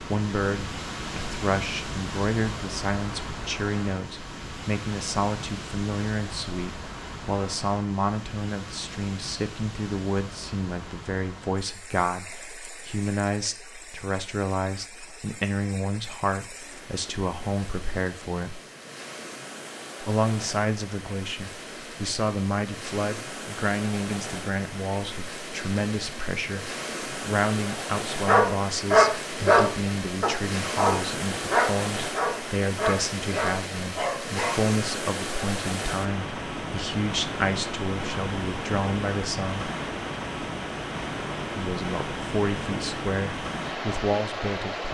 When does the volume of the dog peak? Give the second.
29 s.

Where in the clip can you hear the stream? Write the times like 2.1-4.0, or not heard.
0.0-44.8.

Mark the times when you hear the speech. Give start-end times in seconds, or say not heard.
0.0-18.6, 20.0-39.7, 41.5-44.8.